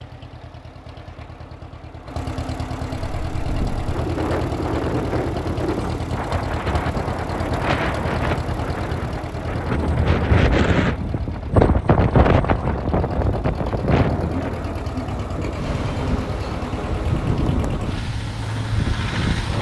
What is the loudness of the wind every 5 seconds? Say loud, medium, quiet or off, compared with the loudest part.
medium, medium, loud, medium.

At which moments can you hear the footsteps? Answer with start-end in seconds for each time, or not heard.
not heard.